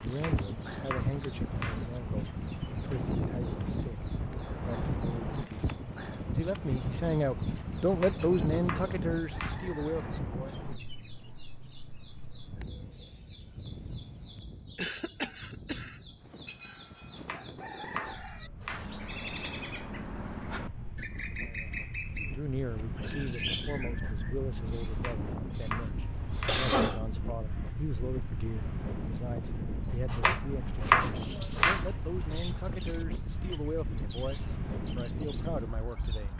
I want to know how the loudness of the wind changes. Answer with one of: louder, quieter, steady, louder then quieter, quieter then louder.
quieter then louder.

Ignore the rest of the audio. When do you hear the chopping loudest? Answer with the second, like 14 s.
31 s.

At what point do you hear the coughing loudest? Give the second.
27 s.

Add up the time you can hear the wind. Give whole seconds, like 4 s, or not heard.
36 s.